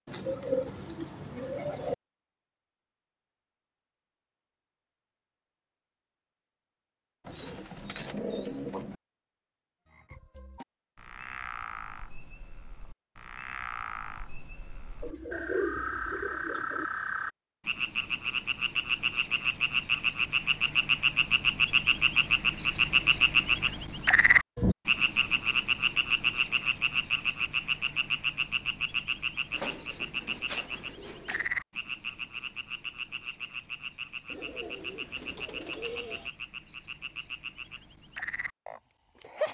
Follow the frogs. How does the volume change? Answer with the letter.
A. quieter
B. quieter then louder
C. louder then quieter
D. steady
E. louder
C.